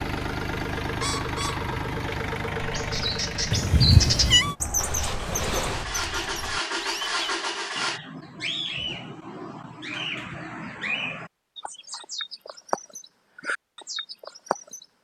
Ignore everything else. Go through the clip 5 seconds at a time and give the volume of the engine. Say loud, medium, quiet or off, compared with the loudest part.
loud, loud, off.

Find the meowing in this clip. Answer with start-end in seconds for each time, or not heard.
3.5-4.5.